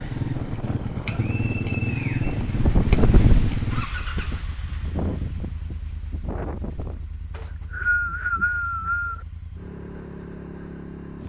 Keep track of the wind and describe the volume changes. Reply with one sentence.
The loudness of the wind goes up, then down.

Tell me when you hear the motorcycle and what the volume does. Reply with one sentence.
The motorcycle can be heard from 0.0 to 11.2 s, getting quieter then louder.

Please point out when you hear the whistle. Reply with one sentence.
The whistle can be heard from 1.1 to 2.4 s and from 7.3 to 9.2 s.